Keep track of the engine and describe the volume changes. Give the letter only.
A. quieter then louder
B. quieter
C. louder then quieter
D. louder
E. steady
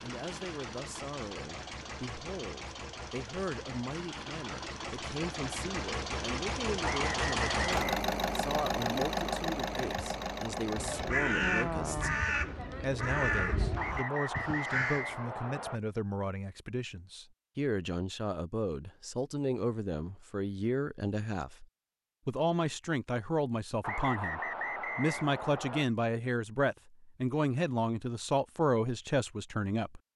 D.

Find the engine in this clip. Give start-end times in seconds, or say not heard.
0.0-11.2.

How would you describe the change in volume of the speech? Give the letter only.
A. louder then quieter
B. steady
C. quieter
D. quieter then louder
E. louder
E.